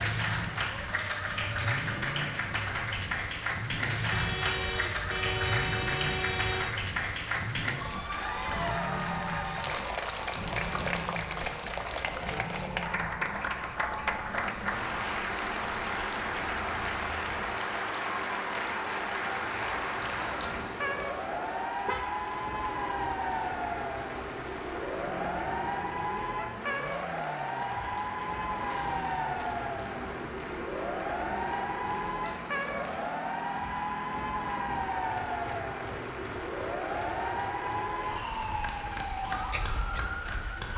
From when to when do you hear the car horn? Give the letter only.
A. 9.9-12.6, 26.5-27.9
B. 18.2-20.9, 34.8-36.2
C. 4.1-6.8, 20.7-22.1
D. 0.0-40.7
C.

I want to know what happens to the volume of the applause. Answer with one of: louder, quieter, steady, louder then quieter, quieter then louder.
quieter.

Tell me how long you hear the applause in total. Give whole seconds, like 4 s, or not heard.
41 s.